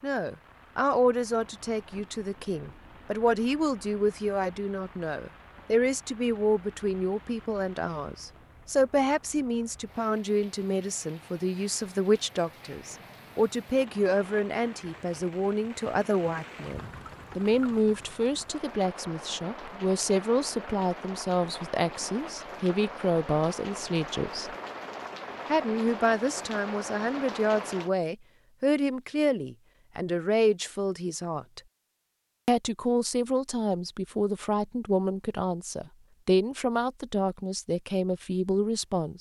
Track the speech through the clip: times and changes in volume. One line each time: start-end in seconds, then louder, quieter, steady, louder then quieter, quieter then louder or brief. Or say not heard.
0.0-24.5 steady
25.5-31.6 steady
32.5-39.1 steady.